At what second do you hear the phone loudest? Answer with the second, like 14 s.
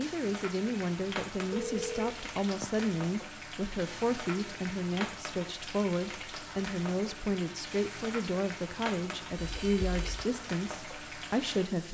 2 s.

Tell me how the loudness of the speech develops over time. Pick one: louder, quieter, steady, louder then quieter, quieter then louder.
steady.